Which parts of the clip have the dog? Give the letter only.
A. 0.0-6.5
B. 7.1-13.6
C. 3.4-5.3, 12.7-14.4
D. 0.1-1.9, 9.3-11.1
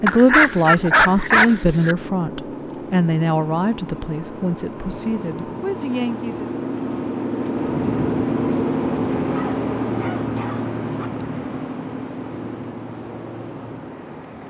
D.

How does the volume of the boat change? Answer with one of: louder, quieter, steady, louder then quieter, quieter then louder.
louder then quieter.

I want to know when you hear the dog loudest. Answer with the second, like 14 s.
1 s.